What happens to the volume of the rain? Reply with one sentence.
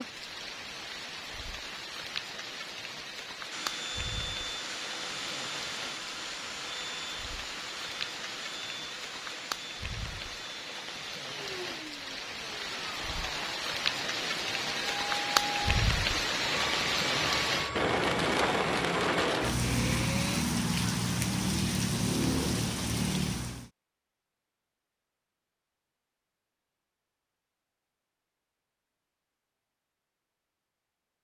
The volume of the rain goes up.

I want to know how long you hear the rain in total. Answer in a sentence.
You can hear the rain for 24 seconds altogether.